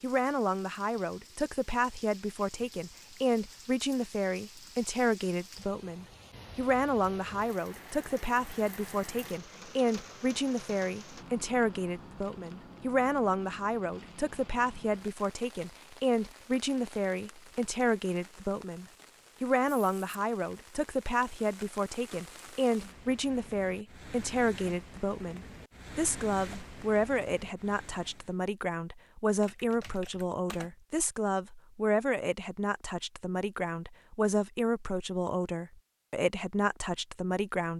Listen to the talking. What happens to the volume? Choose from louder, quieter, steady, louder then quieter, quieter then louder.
steady.